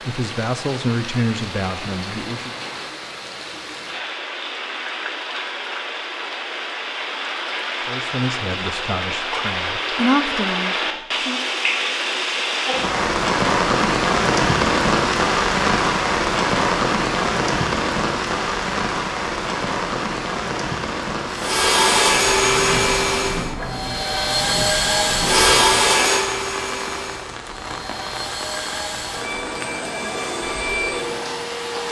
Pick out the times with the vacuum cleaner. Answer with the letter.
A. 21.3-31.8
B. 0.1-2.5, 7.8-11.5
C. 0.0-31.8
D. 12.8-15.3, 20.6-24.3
A.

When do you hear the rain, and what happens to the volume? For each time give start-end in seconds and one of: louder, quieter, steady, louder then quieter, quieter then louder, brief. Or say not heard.
0.0-31.8 louder then quieter.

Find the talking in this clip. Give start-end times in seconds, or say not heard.
0.1-2.5, 7.8-11.5.